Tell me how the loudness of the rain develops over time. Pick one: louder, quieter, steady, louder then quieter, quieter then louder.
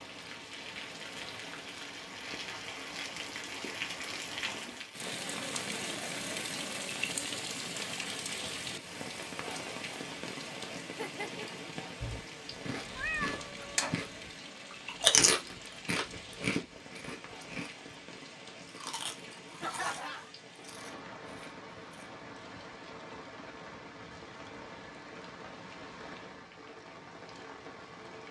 quieter.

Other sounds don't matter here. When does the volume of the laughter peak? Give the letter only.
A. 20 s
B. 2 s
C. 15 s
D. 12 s
A.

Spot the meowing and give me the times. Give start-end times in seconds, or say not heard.
12.9-14.1.